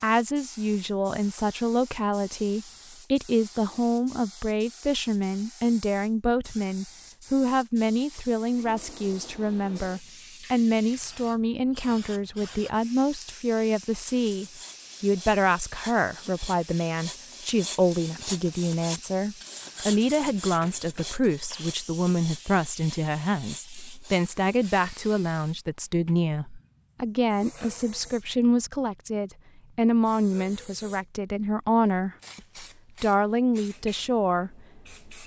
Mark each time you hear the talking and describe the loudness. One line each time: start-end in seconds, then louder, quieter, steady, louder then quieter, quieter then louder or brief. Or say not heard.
0.0-35.2 steady.